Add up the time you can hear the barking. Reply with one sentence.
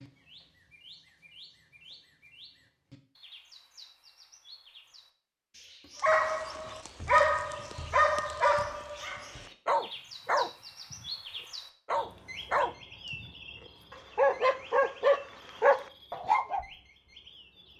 The barking can be heard for 9 seconds in total.